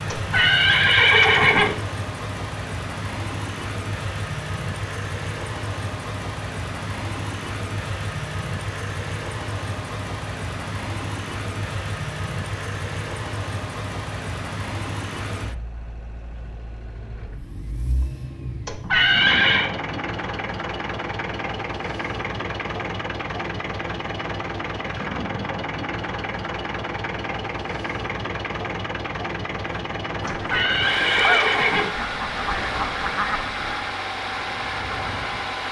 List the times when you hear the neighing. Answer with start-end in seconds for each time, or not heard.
0.1-1.8, 18.6-19.7, 30.2-31.9.